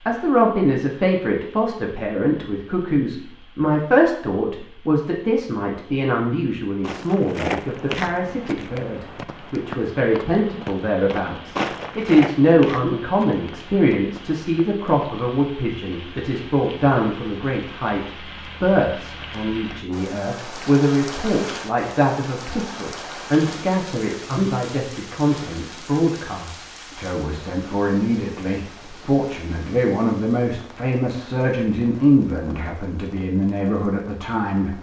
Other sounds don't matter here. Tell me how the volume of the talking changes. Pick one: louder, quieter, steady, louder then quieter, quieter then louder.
steady.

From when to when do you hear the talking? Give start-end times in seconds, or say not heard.
0.1-34.7.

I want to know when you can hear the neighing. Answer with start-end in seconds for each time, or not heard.
not heard.